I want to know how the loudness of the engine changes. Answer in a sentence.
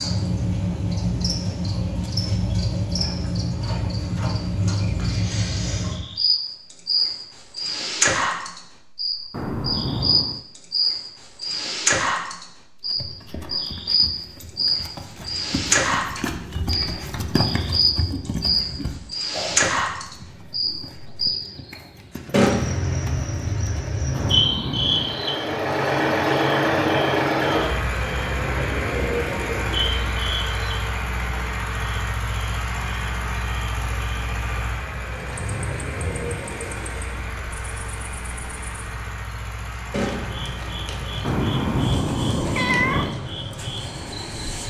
The volume of the engine goes down.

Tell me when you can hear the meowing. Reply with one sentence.
You can hear the meowing from 9.3 to 10.4 s, from 24.1 to 25.2 s and from 41.2 to 43.2 s.